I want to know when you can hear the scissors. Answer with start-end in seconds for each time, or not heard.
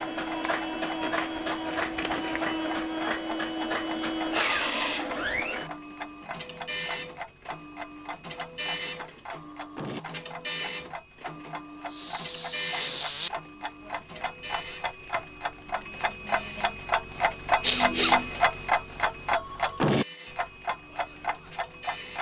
1.0-2.5.